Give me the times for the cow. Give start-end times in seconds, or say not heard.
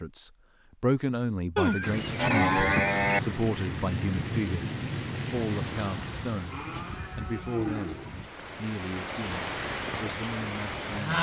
1.6-3.2, 6.0-8.3.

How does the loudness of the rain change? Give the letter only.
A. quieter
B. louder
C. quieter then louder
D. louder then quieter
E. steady
C.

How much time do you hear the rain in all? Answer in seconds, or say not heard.
9 s.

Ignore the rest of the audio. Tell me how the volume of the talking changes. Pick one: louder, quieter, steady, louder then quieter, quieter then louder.
quieter.